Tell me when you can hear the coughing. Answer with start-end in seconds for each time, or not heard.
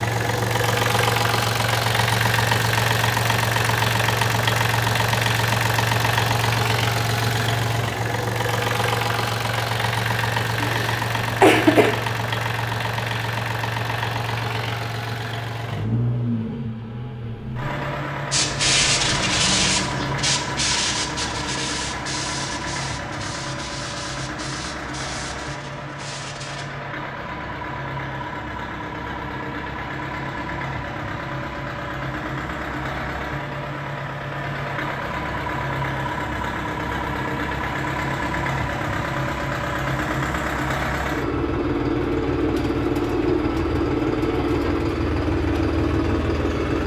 10.6-11.9.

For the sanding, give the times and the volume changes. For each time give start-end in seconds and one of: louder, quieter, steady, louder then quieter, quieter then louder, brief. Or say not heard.
18.3-26.6 quieter.